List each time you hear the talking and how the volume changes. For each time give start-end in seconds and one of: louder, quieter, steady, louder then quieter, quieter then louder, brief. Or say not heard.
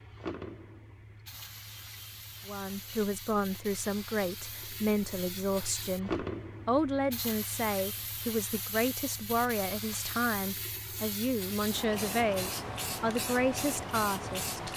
2.5-14.7 steady.